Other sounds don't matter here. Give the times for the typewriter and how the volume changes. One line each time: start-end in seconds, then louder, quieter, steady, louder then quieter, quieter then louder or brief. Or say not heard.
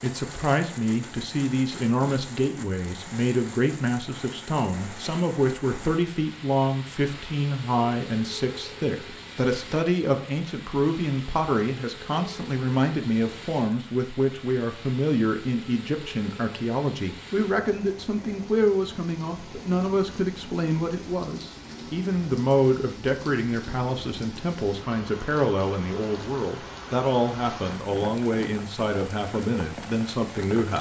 not heard.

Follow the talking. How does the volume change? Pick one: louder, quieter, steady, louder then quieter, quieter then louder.
steady.